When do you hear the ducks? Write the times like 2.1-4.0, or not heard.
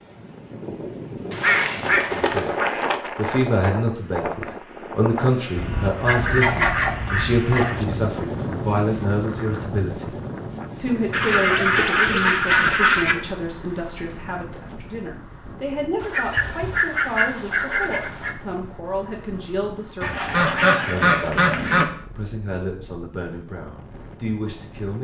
1.3-3.1, 5.5-7.8, 11.1-13.2, 16.0-18.4, 20.0-21.9.